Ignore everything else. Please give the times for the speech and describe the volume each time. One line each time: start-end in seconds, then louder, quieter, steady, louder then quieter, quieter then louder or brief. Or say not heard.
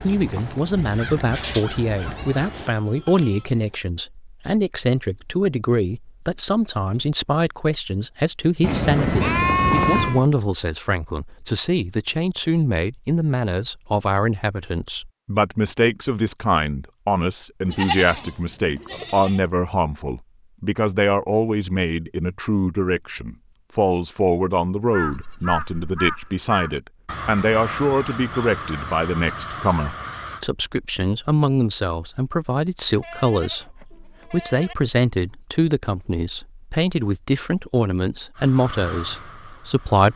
0.0-40.1 steady.